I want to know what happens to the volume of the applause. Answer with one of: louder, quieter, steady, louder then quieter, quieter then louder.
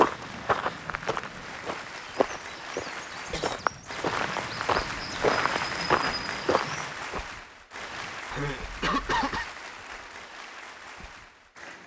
louder then quieter.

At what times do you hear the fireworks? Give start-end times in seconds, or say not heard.
not heard.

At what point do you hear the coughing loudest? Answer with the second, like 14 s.
9 s.